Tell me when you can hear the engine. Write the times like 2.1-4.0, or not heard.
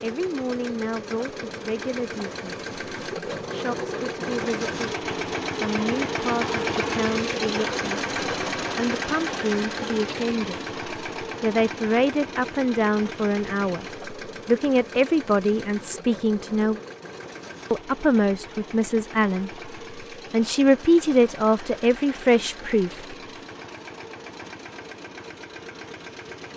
0.0-26.5.